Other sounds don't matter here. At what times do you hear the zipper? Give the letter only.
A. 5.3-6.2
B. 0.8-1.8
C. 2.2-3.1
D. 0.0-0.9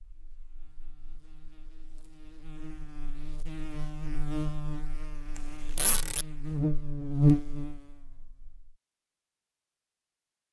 A.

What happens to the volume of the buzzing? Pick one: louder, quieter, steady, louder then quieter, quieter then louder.
louder.